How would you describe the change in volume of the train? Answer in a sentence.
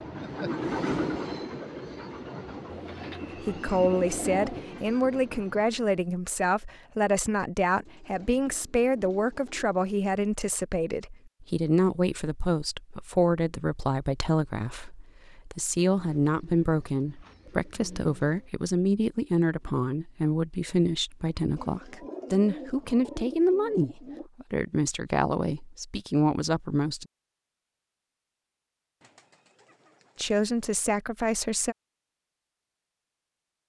The loudness of the train goes down.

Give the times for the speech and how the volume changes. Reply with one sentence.
The speech can be heard from 3.4 to 27.1 s, at a steady volume; and briefly from 30.1 to 31.8 s.